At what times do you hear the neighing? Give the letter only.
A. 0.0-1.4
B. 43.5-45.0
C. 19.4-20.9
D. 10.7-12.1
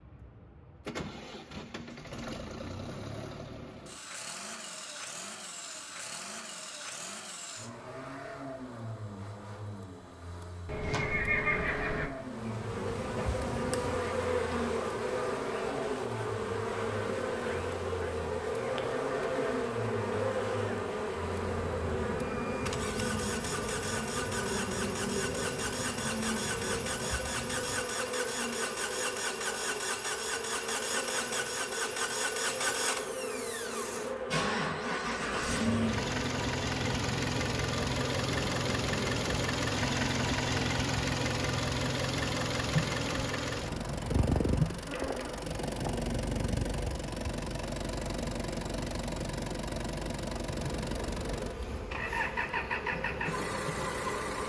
D.